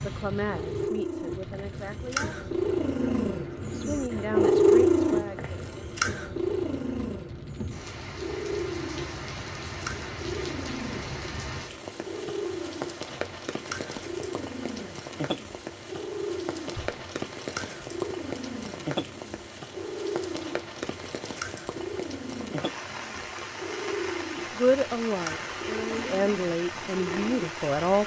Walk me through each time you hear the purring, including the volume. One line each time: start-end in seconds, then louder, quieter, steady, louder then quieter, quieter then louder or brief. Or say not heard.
0.0-28.0 quieter.